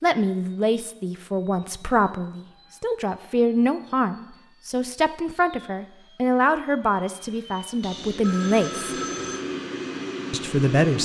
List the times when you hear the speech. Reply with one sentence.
You can hear the speech from 0.0 to 8.9 s and from 10.3 to 11.0 s.